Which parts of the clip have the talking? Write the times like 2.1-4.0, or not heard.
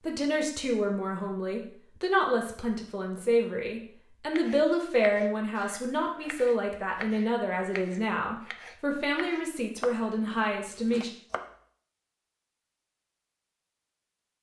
0.0-11.1.